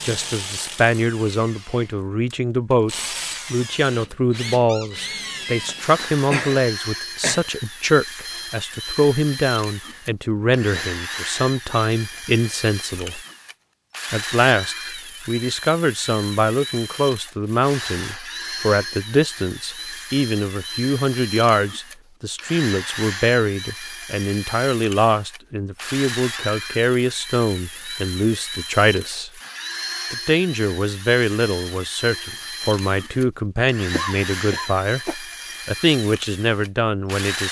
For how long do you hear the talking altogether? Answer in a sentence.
The talking can be heard for 36 seconds in total.